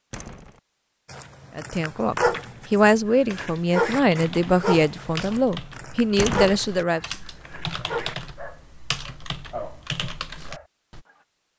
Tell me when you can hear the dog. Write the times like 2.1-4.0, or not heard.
1.1-11.2.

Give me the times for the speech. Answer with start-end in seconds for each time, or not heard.
1.6-7.0.